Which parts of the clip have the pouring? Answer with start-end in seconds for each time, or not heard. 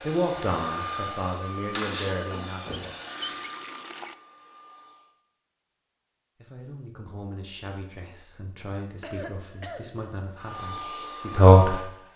2.6-4.2.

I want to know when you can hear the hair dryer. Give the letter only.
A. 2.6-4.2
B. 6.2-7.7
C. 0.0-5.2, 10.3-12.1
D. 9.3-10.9
C.